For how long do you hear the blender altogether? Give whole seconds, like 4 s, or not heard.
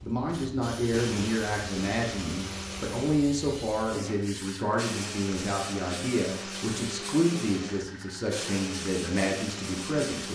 9 s.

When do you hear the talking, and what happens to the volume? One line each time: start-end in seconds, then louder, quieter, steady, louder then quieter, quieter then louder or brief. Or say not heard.
0.0-10.3 steady.